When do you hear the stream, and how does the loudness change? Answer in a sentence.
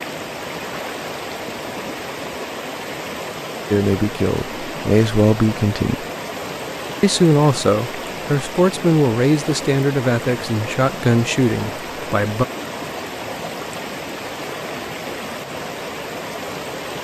The stream can be heard from 0.0 to 16.9 s, at a steady volume.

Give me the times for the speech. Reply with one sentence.
You can hear the speech from 3.7 to 6.0 s and from 7.0 to 12.4 s.